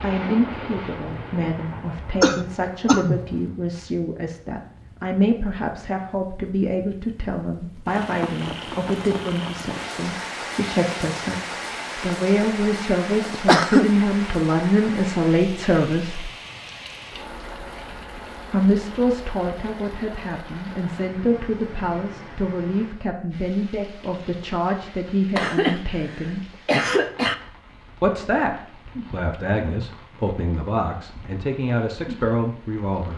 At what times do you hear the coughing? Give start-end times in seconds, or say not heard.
2.2-3.2, 13.2-13.9, 25.4-27.4.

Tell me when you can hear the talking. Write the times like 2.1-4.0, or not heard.
0.0-11.4, 12.0-16.3, 18.5-26.4, 28.0-33.1.